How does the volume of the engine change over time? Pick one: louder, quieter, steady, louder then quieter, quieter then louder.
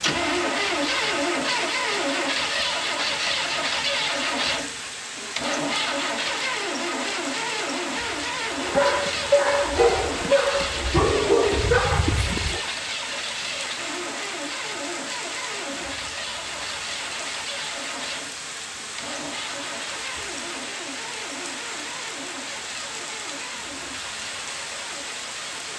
quieter.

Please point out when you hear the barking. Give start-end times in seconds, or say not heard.
8.6-12.6.